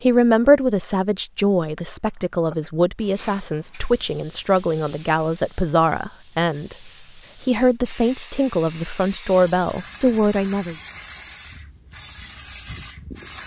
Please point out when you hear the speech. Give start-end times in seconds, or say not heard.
0.0-10.8.